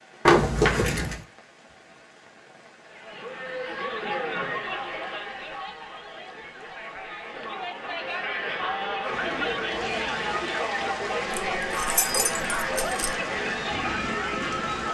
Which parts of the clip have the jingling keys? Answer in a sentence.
The jingling keys can be heard from 0.2 to 1.2 s and from 11.3 to 13.2 s.